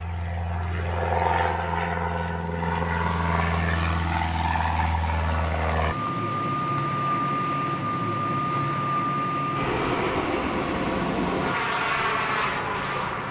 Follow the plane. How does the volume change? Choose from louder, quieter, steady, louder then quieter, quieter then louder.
steady.